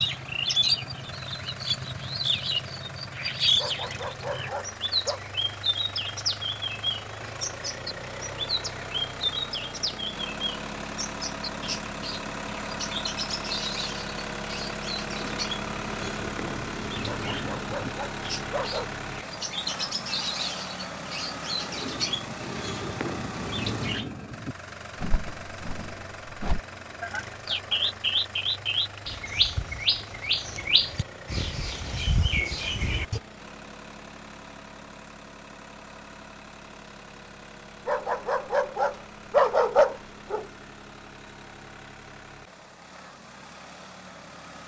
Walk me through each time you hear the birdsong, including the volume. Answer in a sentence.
You can hear the birdsong from 0.0 to 33.2 s, getting quieter then louder.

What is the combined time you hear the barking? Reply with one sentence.
The barking can be heard for 6 seconds in total.